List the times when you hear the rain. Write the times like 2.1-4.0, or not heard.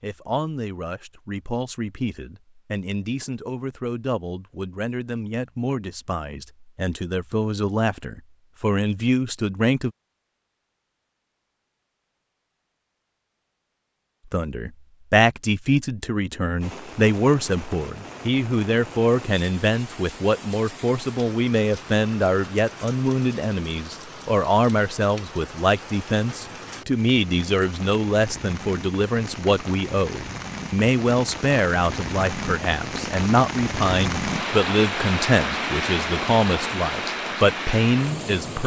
16.6-38.6.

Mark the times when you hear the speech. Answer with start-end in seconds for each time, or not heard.
0.0-9.9, 14.3-38.6.